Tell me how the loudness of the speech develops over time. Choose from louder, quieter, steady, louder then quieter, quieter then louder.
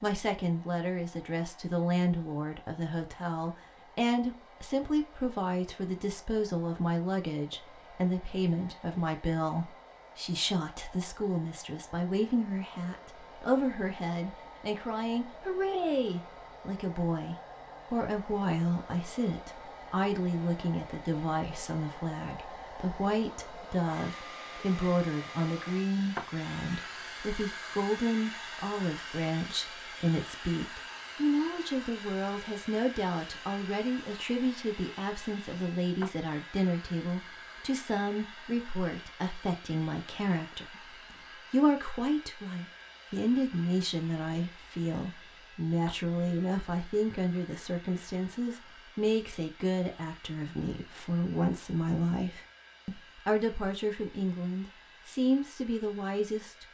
steady.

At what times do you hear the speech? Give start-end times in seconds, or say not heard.
0.0-56.7.